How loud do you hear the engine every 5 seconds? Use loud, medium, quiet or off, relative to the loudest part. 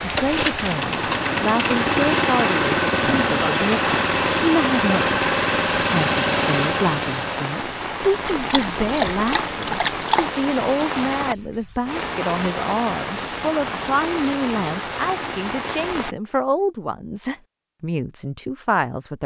loud, loud, off, off.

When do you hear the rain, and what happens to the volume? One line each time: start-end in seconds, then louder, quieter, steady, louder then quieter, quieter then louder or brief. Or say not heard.
0.0-16.1 steady.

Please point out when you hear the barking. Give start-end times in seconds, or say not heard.
8.2-10.3.